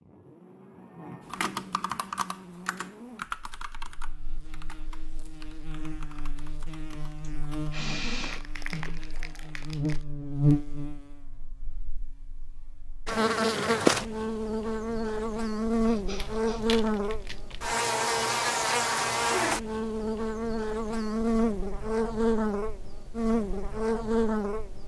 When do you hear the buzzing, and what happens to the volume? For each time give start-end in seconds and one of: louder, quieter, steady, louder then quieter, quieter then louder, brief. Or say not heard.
0.0-24.8 louder.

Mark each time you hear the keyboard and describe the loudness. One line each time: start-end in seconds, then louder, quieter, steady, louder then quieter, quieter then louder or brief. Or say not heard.
1.2-7.7 quieter.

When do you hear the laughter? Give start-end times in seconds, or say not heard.
not heard.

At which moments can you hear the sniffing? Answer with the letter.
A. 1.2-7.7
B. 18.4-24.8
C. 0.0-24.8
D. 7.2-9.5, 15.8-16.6
D.